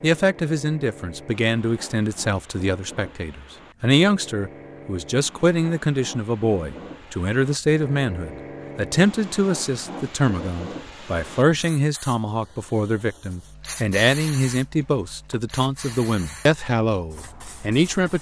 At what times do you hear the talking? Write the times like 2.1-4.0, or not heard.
0.0-18.1.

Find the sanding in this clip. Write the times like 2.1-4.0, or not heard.
not heard.